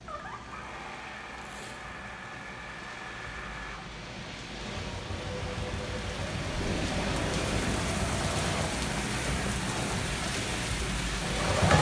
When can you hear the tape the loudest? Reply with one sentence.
The volume of the tape peaks at 7 seconds.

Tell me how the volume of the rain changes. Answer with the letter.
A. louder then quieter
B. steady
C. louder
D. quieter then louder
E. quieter
C.